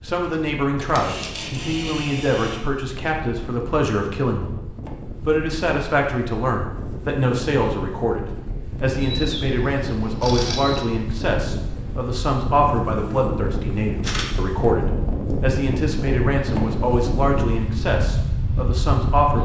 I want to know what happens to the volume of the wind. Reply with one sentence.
The loudness of the wind goes up.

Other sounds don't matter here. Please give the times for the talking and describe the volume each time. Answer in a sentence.
The talking can be heard from 0.0 to 19.4 s, at a steady volume.